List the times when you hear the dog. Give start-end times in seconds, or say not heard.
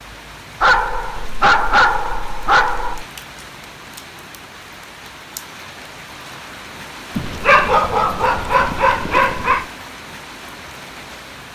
0.6-3.0, 7.2-9.7.